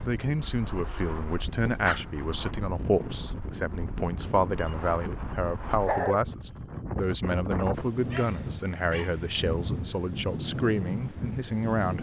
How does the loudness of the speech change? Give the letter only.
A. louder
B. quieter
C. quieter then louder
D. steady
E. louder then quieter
D.